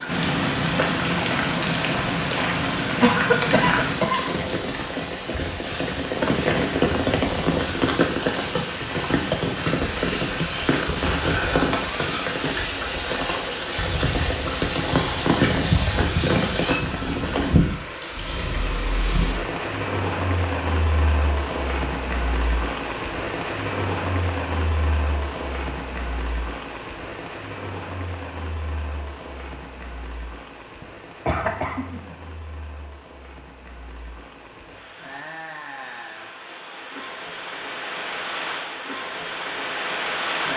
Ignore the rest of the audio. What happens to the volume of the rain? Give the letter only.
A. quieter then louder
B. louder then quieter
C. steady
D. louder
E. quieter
E.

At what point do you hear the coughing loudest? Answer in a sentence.
The volume of the coughing peaks at 3 seconds.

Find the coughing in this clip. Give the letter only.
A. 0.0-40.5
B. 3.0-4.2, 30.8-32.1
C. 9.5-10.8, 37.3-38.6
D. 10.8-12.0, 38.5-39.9
B.